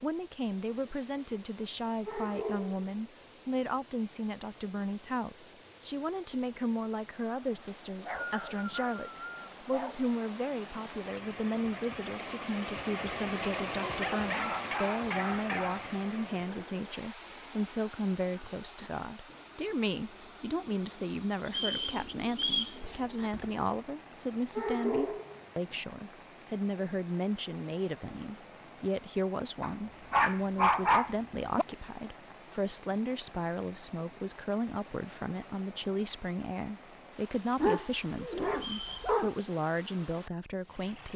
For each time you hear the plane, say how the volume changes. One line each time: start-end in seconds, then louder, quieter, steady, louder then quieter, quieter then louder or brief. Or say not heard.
not heard.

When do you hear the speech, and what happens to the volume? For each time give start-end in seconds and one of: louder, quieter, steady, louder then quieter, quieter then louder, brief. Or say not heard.
0.0-41.1 steady.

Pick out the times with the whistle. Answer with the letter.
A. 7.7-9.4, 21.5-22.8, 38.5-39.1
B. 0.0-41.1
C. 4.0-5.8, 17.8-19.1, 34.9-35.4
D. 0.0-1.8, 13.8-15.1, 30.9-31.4
A.